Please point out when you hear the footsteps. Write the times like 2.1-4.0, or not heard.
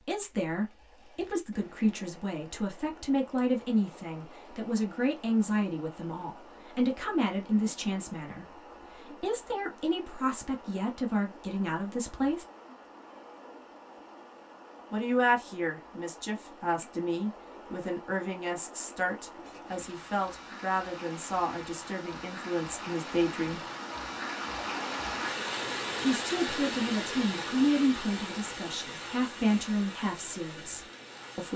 not heard.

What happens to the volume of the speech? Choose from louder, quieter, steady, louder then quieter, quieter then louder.
steady.